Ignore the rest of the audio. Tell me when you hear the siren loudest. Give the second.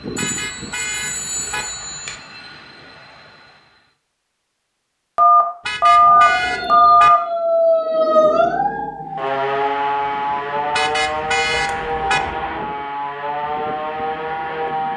8 s.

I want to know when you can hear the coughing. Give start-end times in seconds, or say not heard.
not heard.